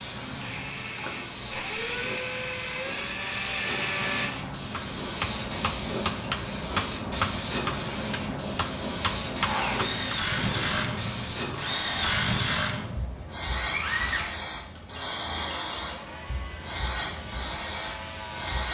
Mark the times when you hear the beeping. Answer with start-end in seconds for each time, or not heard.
not heard.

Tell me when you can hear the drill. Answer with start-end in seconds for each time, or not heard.
0.1-4.3, 9.4-18.6.